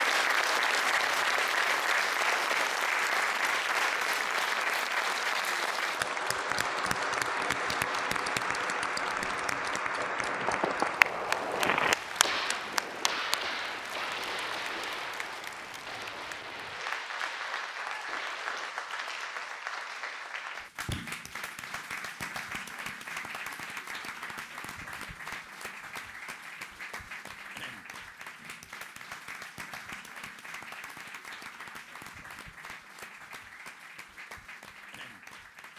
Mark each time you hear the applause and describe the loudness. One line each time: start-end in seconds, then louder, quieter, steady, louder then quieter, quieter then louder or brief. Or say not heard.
0.0-35.7 quieter.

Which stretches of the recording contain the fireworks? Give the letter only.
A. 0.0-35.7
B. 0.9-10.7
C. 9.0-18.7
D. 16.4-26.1
C.